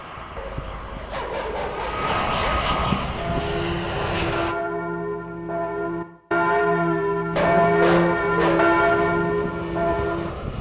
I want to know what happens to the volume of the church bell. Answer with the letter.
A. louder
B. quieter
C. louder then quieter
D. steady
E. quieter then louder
A.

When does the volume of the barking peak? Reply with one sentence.
The volume of the barking peaks at 8 seconds.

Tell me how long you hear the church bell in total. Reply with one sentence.
You can hear the church bell for 7 seconds altogether.